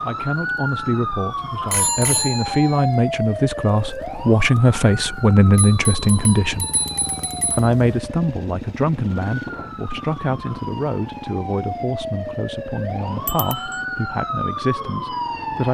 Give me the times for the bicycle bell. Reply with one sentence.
The bicycle bell can be heard from 1.7 to 2.9 s, from 5.5 to 7.7 s and from 13.2 to 13.8 s.